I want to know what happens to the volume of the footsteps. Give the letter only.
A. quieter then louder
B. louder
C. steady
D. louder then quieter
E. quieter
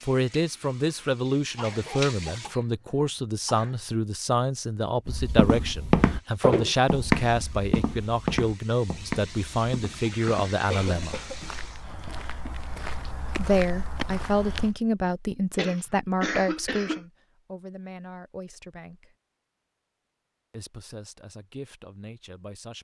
A.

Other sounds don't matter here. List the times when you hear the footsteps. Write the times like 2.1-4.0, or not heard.
5.0-14.8.